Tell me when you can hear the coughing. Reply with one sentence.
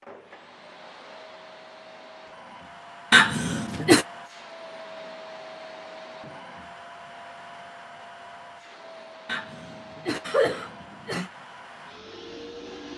The coughing can be heard from 3.1 to 4.0 s and from 9.2 to 11.3 s.